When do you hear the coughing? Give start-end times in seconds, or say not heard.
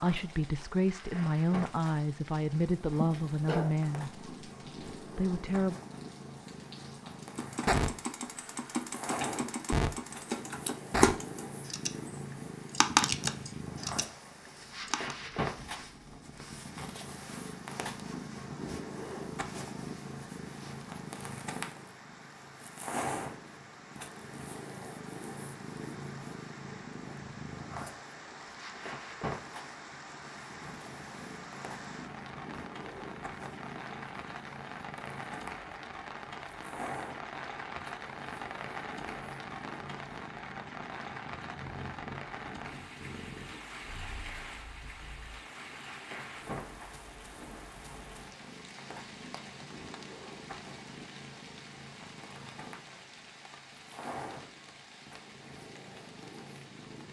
3.0-3.8.